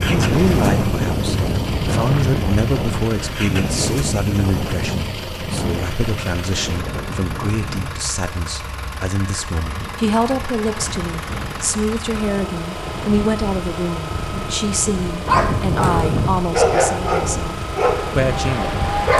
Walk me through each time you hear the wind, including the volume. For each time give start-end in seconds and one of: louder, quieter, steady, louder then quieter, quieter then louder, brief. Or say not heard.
0.0-19.1 quieter then louder.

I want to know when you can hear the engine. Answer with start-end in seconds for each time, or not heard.
0.0-19.1.